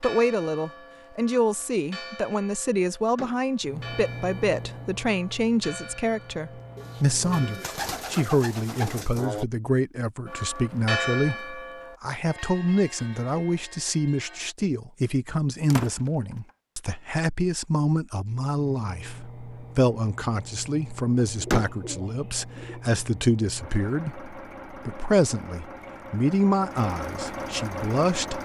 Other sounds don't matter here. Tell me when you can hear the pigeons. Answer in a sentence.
You can hear the pigeons from 6.8 to 9.4 s and from 21.2 to 22.9 s.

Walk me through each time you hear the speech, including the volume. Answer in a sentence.
The speech can be heard from 0.0 to 28.4 s, at a steady volume.